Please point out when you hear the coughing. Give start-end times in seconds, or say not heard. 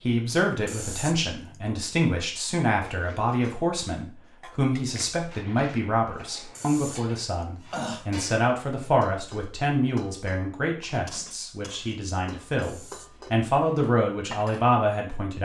0.7-1.6, 6.5-8.1, 12.6-13.2.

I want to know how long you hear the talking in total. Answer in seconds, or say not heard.
15 s.